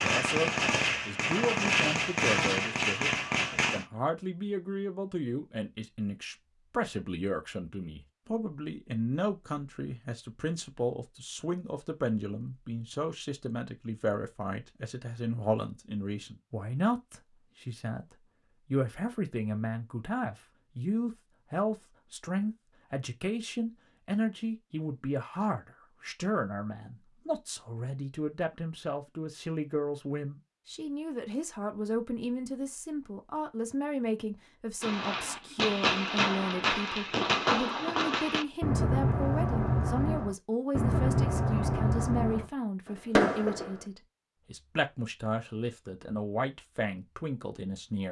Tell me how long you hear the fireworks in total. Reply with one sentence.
You can hear the fireworks for 13 seconds altogether.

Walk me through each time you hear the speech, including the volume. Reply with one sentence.
You can hear the speech from 0.0 to 48.0 s, at a steady volume.